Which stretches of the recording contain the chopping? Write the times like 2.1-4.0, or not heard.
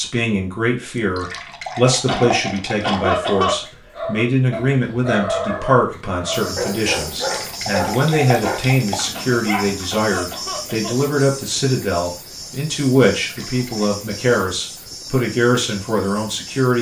not heard.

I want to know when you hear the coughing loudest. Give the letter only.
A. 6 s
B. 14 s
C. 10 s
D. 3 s
D.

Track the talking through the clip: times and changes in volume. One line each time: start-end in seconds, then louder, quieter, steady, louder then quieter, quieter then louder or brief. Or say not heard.
0.0-16.7 steady.